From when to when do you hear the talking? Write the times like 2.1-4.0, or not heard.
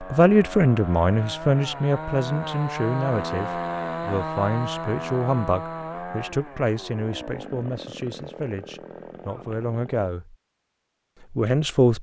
0.0-10.3, 11.3-11.9.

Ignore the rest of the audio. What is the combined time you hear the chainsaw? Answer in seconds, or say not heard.
10 s.